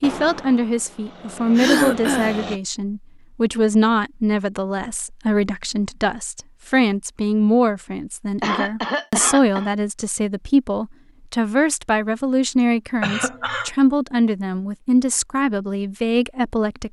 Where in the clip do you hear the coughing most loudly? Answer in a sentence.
The loudest moment of the coughing is at 2 seconds.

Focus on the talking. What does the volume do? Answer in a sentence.
The loudness of the talking stays about the same.